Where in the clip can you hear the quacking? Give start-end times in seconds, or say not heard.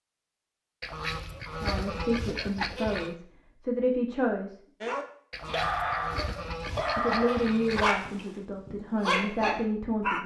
0.8-3.1, 5.3-8.0.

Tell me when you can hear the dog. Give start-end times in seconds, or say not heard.
4.8-10.2.